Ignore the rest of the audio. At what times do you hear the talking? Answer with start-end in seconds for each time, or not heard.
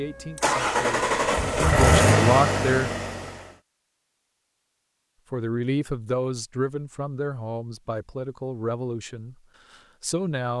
0.0-2.9, 5.3-9.3, 10.0-10.5.